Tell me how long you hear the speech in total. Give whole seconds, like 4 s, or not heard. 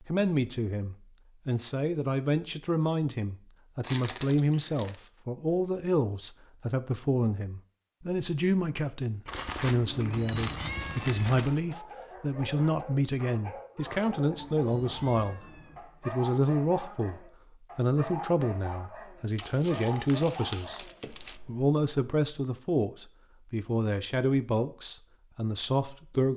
25 s.